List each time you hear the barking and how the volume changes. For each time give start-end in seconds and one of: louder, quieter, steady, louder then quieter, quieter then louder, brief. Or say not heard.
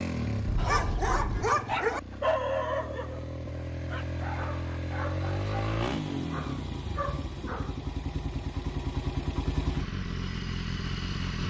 0.6-7.8 quieter.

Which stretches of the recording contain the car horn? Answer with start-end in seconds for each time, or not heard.
0.5-1.6.